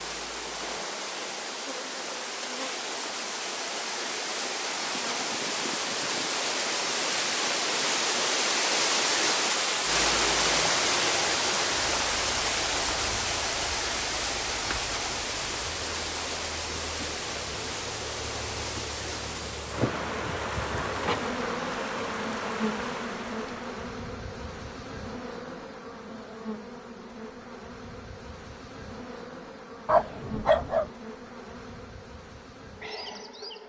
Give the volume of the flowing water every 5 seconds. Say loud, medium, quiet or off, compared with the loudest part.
medium, loud, loud, medium, medium, off, off.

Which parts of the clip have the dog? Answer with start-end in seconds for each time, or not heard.
29.9-30.9.